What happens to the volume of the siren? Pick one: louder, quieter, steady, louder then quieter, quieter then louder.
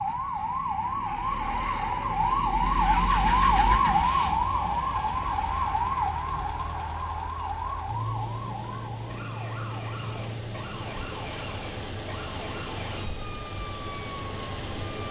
quieter.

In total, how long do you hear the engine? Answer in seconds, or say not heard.
12 s.